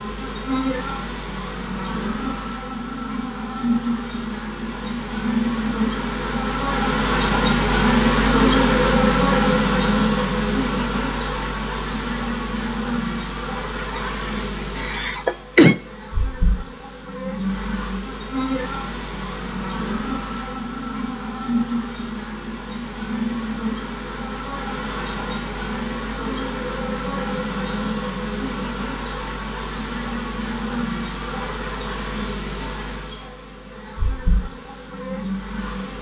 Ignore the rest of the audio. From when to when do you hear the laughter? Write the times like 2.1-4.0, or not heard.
13.8-15.8.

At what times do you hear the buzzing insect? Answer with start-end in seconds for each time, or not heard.
0.0-35.9.